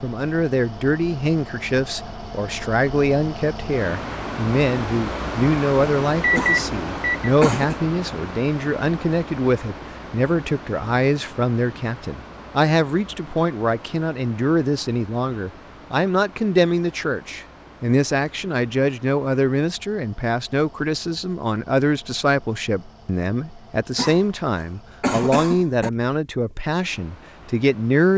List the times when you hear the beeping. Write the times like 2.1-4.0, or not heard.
6.2-7.3.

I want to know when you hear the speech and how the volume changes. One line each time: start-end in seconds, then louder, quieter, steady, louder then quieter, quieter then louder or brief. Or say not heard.
0.0-28.1 steady.